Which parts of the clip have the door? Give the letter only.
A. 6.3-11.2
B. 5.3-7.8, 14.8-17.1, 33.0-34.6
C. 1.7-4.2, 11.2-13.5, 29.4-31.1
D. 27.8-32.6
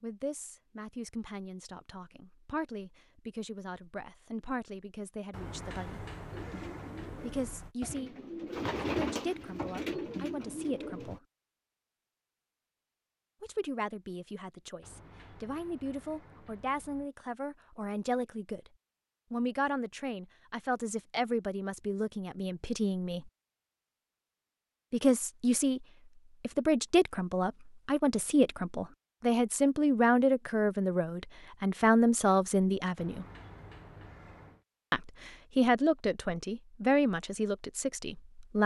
B.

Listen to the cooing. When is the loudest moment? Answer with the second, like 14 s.
9 s.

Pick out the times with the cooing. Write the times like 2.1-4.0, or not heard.
6.3-11.2.